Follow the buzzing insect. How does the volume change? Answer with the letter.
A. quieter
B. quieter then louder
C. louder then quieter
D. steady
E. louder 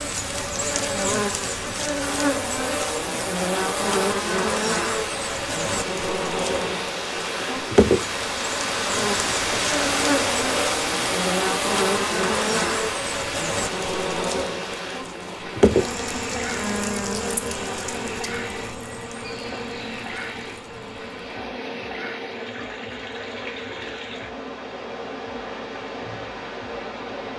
A.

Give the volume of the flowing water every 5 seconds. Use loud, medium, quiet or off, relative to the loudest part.
medium, loud, loud, medium, medium, medium.